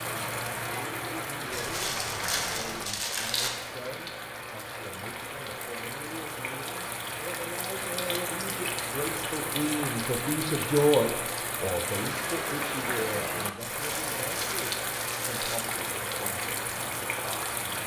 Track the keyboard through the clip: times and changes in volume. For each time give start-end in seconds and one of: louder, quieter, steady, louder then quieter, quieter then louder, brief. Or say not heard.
not heard.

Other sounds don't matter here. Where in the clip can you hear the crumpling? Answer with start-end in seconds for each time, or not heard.
1.5-3.5, 13.7-15.6.